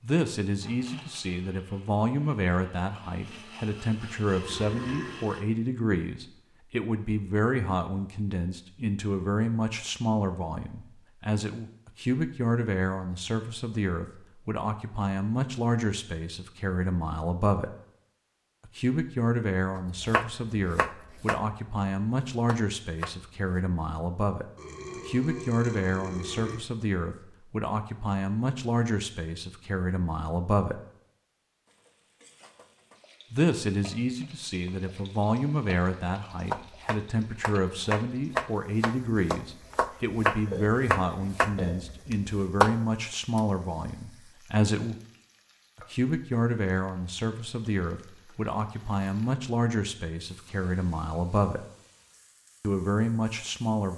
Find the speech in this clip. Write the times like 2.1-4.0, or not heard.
0.0-17.7, 18.6-30.8, 33.3-45.0, 45.8-51.6, 52.6-53.9.